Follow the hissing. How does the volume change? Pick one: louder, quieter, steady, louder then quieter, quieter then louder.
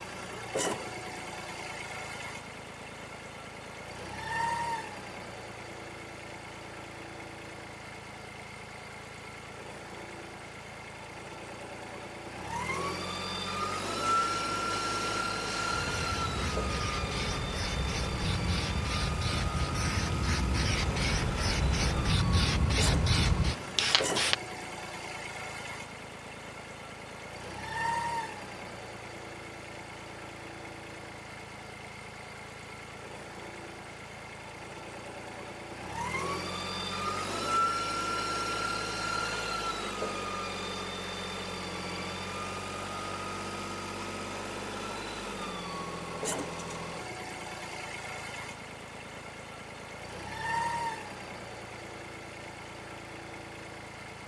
louder.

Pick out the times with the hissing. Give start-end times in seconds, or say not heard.
14.0-24.4.